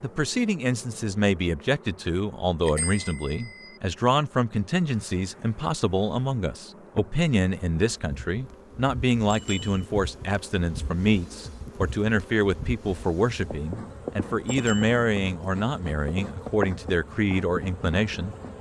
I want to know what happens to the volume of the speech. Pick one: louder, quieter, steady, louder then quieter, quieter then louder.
steady.